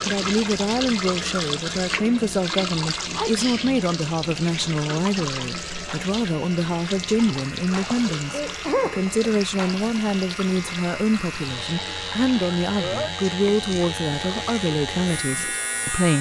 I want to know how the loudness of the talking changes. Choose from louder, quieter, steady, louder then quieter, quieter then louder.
steady.